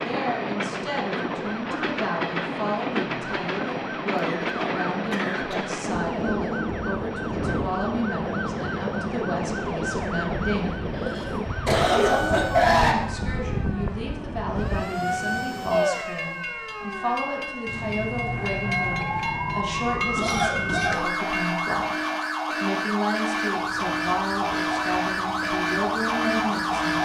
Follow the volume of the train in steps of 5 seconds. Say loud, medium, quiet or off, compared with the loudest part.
loud, loud, loud, loud, medium, quiet.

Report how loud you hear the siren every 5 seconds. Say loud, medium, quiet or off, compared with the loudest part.
quiet, medium, medium, medium, loud, loud.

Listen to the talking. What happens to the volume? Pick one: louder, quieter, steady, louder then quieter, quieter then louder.
steady.